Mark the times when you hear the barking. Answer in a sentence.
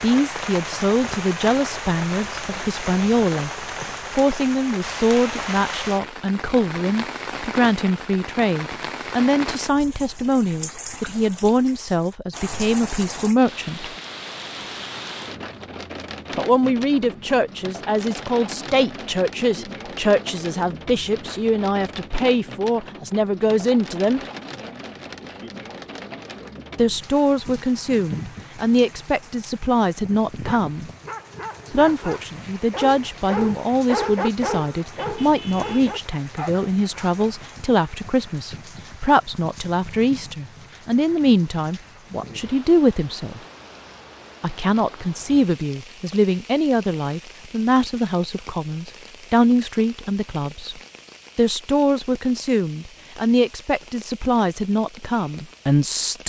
The barking can be heard from 30.2 to 37.2 s.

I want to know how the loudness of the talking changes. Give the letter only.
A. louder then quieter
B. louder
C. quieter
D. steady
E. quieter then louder
D.